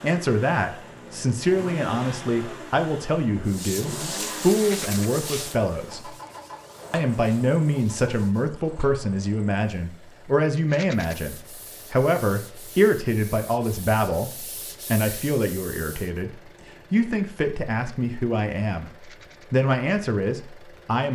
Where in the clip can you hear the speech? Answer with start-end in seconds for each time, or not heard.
0.0-6.2, 6.9-18.9, 19.5-21.0.